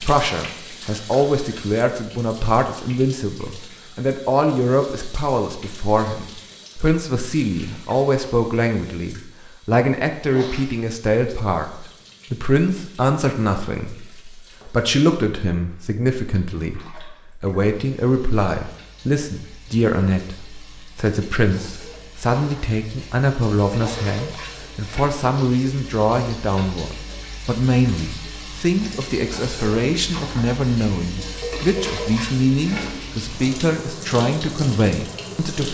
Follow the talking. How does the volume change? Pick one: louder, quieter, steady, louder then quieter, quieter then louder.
steady.